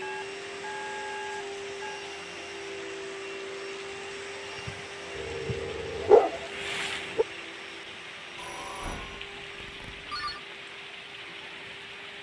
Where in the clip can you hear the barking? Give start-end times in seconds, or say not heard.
5.2-7.2.